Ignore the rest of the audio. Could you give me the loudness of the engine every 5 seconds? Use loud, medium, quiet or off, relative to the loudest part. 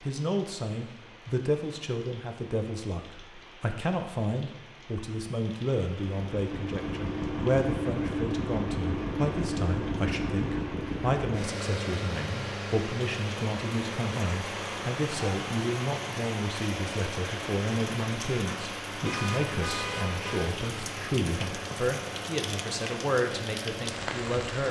off, loud, loud, medium, medium.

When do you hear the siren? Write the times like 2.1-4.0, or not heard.
not heard.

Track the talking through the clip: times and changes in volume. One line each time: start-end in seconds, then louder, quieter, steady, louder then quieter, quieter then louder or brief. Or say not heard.
0.0-24.6 steady.